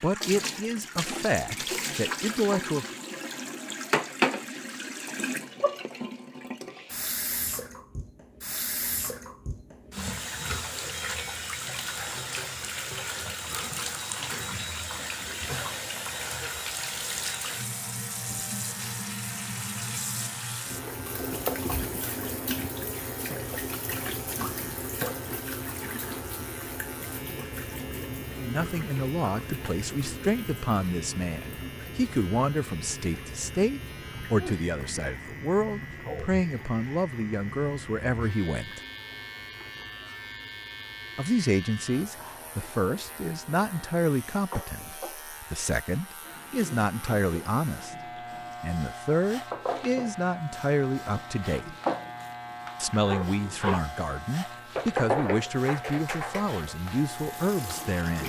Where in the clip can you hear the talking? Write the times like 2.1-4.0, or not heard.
0.0-2.9, 28.4-38.8, 41.1-48.0, 48.6-51.8, 52.8-58.2.